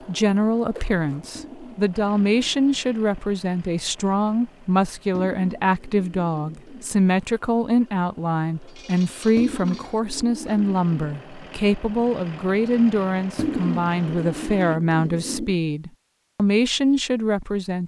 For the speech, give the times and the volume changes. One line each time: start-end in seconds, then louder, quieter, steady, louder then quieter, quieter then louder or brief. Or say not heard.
0.1-17.8 steady.